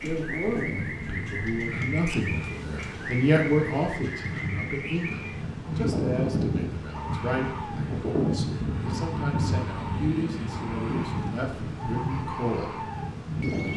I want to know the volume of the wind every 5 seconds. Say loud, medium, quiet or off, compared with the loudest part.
medium, loud, loud.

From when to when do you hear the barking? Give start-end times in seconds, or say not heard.
not heard.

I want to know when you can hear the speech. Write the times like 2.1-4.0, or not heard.
0.0-12.8.